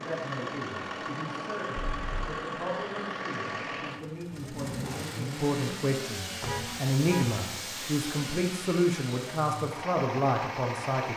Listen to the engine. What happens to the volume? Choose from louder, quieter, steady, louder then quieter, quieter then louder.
steady.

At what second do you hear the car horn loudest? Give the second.
7 s.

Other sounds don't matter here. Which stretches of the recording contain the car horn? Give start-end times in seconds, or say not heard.
1.8-2.3, 6.4-7.3.